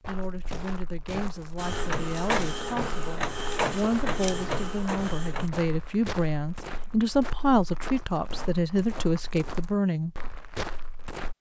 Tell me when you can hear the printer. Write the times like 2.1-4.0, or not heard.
1.6-5.5.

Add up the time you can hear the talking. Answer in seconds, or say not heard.
10 s.